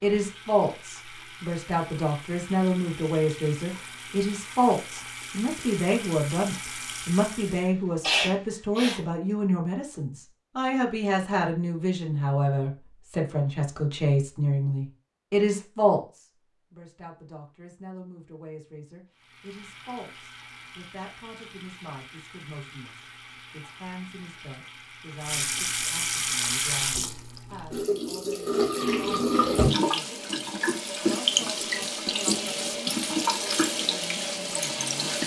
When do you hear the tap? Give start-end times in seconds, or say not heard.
0.0-7.7, 19.1-35.2.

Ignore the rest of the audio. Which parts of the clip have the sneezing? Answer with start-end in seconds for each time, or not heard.
7.5-9.0.